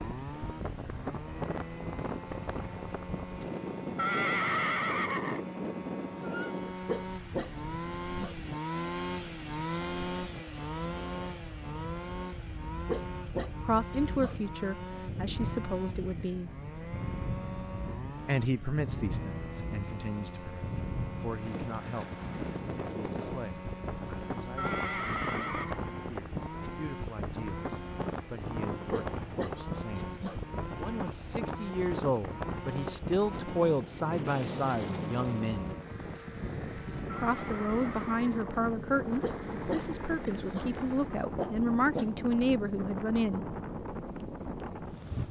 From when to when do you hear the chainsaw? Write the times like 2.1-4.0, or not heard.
0.0-41.2.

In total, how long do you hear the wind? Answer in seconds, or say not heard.
45 s.